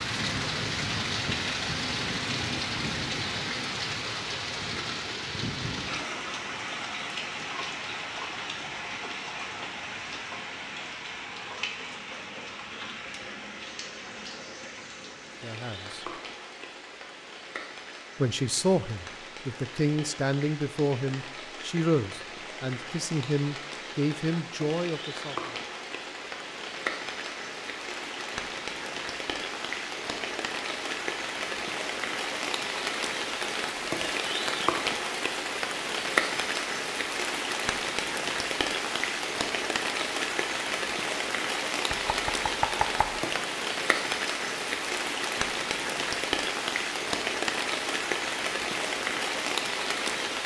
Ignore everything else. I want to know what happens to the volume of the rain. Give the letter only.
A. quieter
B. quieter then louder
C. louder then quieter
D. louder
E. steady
B.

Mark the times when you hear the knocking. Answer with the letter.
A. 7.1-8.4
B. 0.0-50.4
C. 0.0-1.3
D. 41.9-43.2
D.